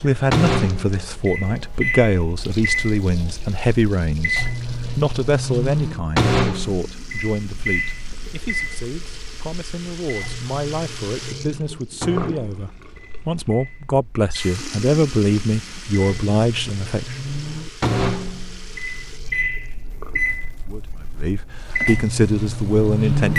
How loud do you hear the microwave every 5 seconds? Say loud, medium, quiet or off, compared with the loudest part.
loud, loud, medium, loud, loud.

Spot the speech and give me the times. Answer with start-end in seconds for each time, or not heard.
0.0-17.1, 20.5-23.3.